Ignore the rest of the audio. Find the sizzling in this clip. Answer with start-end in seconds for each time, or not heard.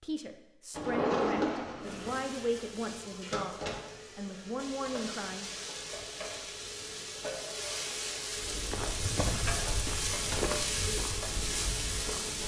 1.8-12.4.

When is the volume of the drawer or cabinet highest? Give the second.
1 s.